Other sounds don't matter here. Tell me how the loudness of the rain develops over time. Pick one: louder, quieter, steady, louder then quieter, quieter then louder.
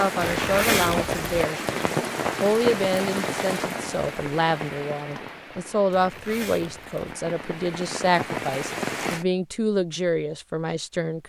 quieter then louder.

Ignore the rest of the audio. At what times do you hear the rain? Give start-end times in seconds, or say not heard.
0.0-9.2.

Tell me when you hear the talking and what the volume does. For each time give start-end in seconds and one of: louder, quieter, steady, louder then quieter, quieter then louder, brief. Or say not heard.
0.0-11.2 steady.